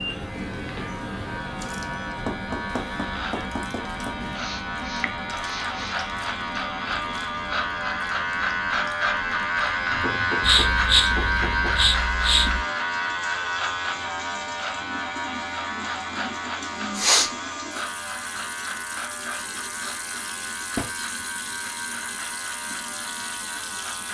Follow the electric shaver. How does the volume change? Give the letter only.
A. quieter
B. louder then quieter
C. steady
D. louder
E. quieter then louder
B.